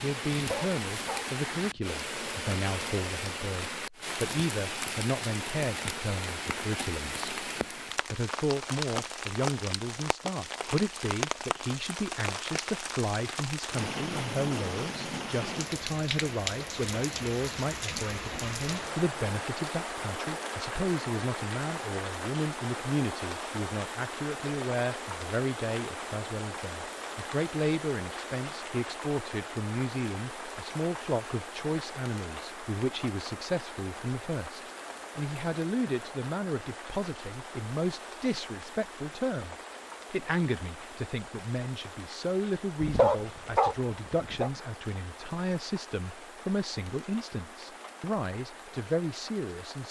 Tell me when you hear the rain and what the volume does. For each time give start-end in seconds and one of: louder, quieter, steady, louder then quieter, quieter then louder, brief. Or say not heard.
0.0-49.8 quieter.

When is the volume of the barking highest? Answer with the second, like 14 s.
43 s.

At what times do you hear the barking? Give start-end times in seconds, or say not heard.
0.3-1.8, 42.8-44.5.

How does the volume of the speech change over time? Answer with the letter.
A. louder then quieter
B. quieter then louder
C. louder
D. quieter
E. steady
E.